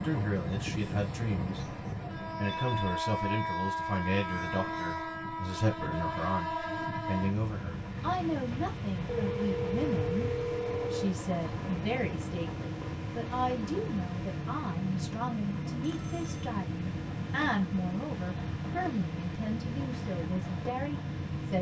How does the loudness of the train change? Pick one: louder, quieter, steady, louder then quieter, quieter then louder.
steady.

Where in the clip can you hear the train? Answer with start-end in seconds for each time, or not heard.
0.0-21.5.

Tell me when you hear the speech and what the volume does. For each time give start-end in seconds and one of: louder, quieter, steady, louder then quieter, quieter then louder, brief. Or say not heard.
0.0-1.8 brief
2.4-21.5 steady.